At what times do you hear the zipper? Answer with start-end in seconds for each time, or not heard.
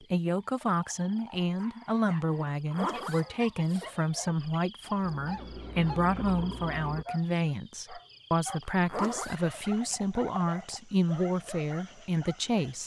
2.5-3.9, 8.6-9.4.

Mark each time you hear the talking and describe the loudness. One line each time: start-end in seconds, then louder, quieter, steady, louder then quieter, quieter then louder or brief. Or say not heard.
0.1-12.8 steady.